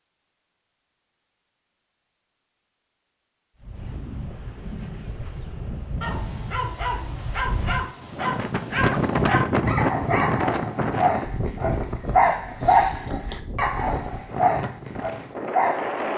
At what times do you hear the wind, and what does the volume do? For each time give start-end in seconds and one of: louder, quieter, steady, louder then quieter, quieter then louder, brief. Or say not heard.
3.6-16.1 louder then quieter.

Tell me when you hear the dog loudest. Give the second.
13 s.